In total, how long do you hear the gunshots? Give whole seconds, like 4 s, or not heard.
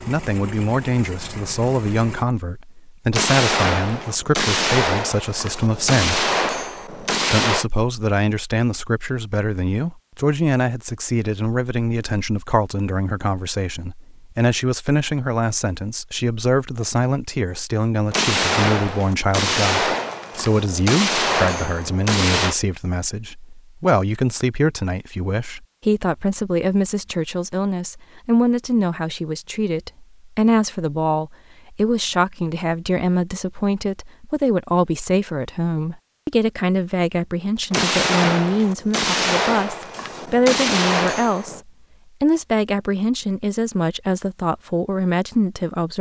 13 s.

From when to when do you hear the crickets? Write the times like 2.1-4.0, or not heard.
not heard.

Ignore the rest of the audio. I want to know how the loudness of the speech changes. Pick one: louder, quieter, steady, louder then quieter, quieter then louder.
steady.